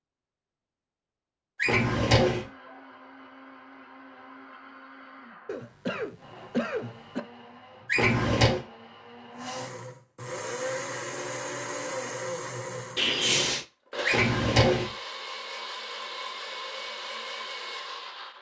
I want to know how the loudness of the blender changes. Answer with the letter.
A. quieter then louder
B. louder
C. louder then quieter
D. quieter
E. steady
B.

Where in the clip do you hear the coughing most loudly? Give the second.
13 s.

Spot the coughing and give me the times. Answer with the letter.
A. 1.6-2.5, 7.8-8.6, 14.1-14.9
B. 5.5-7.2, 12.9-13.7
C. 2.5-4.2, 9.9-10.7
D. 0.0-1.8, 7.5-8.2
B.